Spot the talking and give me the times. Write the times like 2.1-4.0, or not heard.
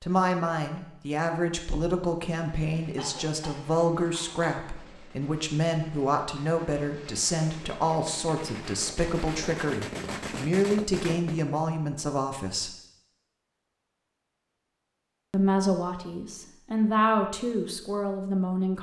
0.0-12.7, 15.3-18.7.